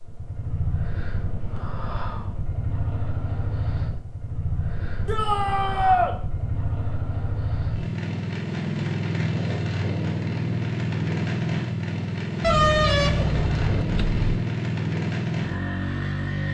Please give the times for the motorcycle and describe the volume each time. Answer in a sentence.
The motorcycle can be heard from 0.0 to 16.4 s, getting louder.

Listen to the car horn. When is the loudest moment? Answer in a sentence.
The loudest moment of the car horn is at 13 seconds.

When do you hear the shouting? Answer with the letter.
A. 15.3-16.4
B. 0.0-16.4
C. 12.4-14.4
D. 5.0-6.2
D.